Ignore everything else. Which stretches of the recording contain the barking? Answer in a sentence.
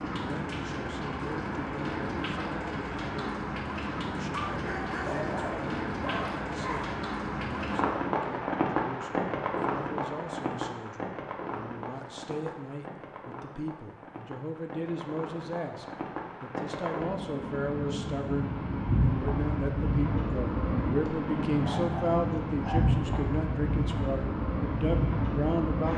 You can hear the barking from 4.3 to 7.0 s and from 21.1 to 22.8 s.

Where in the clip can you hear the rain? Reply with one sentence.
The rain can be heard from 0.0 to 25.9 s.